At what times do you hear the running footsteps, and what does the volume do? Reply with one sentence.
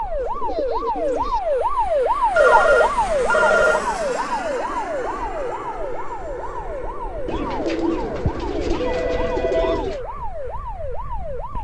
The running footsteps can't be heard in this clip.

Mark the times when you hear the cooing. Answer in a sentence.
You can hear the cooing from 0.1 to 1.4 s and from 7.2 to 10.0 s.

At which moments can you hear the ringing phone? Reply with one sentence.
You can hear the ringing phone from 2.4 to 3.9 s and from 8.8 to 9.8 s.